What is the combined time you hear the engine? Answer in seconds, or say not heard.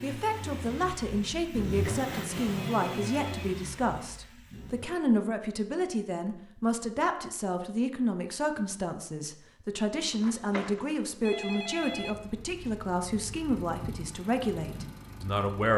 9 s.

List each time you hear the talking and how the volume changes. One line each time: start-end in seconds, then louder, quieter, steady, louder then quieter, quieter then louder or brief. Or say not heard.
0.0-15.7 steady.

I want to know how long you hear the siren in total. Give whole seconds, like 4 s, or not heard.
not heard.